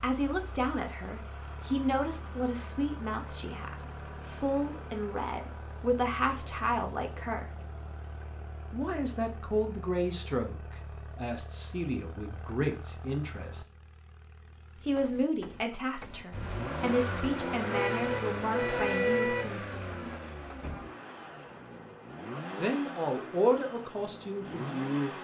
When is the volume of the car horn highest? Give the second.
19 s.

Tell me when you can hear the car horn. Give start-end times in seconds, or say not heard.
17.6-19.4.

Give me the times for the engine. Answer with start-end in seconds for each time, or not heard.
0.0-25.1.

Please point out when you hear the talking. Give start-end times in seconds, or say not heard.
0.0-7.5, 8.7-13.7, 14.8-20.1, 22.6-25.1.